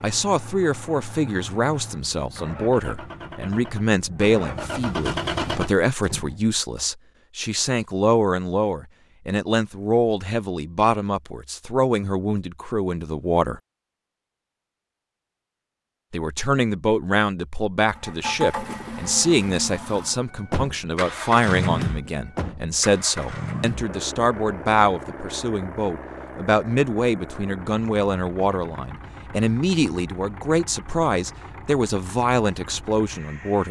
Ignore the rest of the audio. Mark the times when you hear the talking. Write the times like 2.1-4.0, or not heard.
0.0-13.6, 16.1-33.6.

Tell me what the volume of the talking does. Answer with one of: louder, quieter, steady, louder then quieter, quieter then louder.
steady.